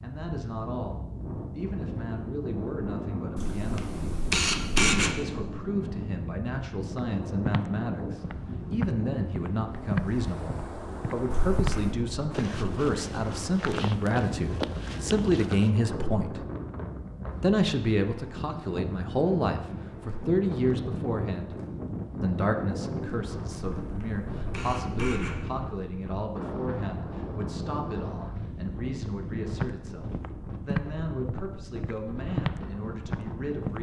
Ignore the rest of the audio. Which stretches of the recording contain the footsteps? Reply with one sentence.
You can hear the footsteps from 6.9 to 15.8 s and from 29.5 to 33.7 s.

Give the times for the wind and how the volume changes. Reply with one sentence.
The wind can be heard from 0.0 to 33.7 s, at a steady volume.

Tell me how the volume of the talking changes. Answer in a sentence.
The loudness of the talking goes up, then down.